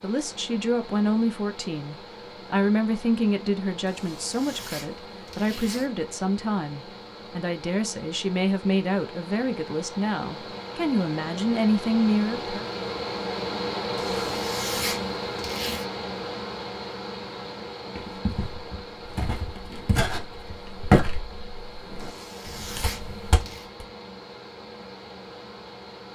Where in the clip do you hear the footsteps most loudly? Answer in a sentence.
The volume of the footsteps peaks at 21 seconds.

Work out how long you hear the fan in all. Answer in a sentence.
The fan can be heard for 26 seconds in total.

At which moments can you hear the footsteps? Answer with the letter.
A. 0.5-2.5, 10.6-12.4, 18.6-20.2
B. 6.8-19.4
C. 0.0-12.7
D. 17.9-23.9
D.